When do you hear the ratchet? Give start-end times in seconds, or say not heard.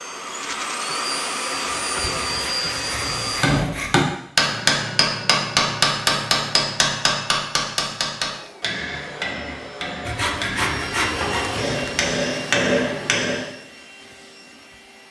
not heard.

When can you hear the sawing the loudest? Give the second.
11 s.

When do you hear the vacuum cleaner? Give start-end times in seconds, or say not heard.
0.0-3.6, 8.2-15.0.